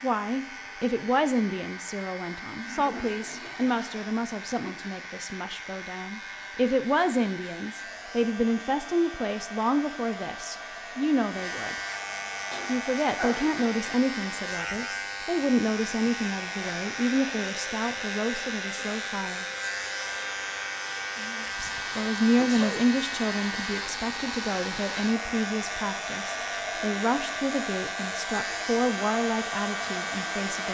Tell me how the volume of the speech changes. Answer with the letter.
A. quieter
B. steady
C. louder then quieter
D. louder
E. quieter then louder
B.